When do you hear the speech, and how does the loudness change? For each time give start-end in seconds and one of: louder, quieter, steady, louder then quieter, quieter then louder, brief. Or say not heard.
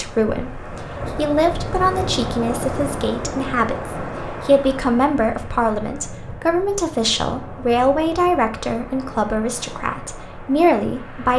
0.0-11.3 steady.